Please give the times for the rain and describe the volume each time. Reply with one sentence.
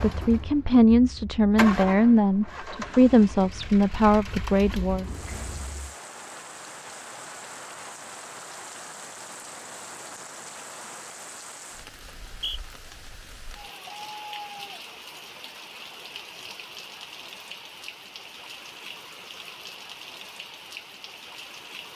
You can hear the rain from 5.0 to 21.9 s, at a steady volume.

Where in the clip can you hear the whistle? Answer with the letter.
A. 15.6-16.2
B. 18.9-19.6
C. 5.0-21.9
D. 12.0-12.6
D.